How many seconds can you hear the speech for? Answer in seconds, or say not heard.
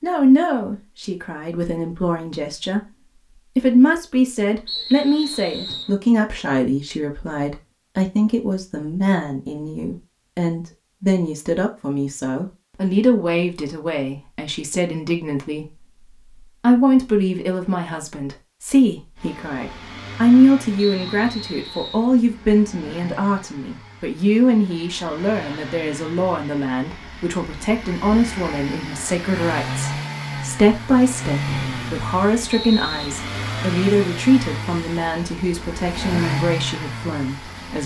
38 s.